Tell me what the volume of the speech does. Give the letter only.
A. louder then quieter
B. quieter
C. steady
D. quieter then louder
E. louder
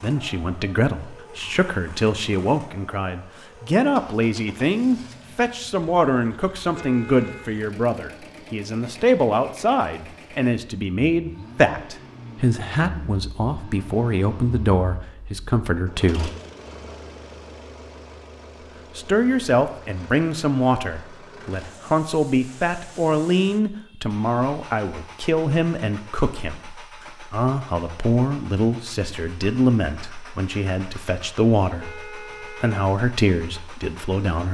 C.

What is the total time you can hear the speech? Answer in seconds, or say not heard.
32 s.